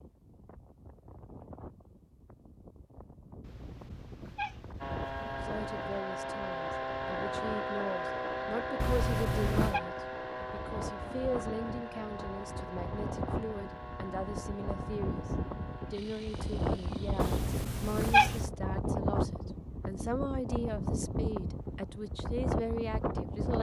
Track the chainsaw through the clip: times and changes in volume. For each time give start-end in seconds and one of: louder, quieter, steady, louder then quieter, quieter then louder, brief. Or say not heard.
4.8-17.4 quieter.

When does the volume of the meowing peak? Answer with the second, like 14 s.
18 s.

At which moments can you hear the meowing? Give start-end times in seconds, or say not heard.
3.4-6.0, 8.8-9.8, 17.2-18.4.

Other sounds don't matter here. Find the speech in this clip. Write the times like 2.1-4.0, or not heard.
5.2-15.2, 15.9-23.5.